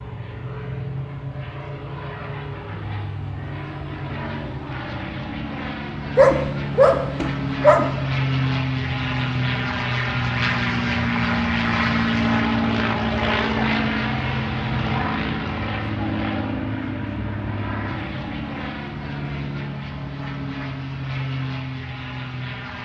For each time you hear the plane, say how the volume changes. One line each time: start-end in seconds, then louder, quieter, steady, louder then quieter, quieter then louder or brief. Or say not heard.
0.0-22.7 louder then quieter.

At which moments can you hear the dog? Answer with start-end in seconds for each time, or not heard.
6.2-7.8.